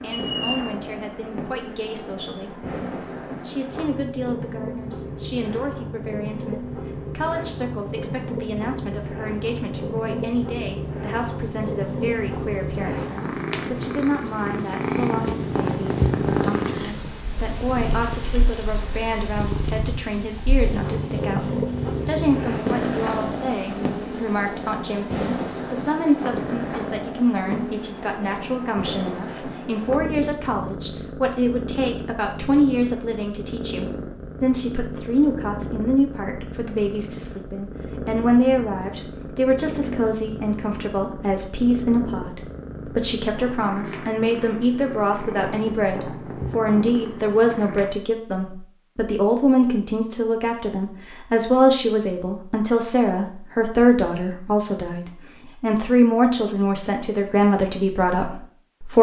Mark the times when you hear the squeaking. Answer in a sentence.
The squeaking can be heard from 0.1 to 0.7 s.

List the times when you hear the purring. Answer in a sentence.
You can hear the purring from 0.0 to 47.9 s.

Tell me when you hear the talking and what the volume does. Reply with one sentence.
The talking can be heard briefly from 0.0 to 2.6 s; and from 3.4 to 58.9 s, getting louder.